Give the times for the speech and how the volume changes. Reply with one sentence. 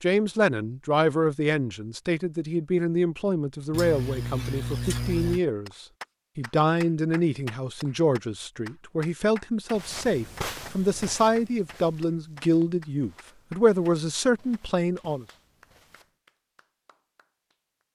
The speech can be heard from 0.0 to 15.2 s, at a steady volume.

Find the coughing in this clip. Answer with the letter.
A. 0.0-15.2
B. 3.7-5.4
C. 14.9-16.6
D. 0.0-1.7
B.